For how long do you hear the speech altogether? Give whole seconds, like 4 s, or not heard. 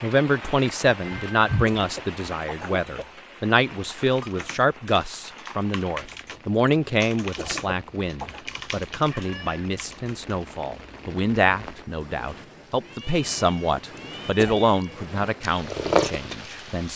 17 s.